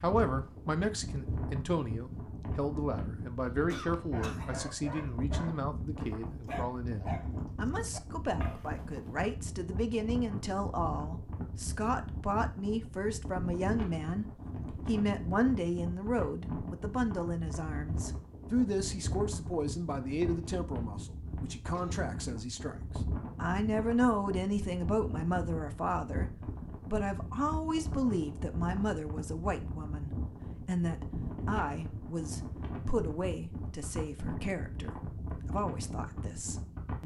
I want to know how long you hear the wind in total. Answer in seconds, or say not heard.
37 s.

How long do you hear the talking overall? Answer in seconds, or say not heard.
37 s.